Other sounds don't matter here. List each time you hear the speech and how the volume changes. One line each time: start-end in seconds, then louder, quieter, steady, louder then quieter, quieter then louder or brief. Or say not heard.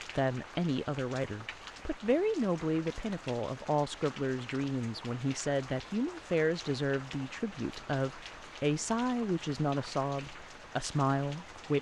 0.1-11.7 steady.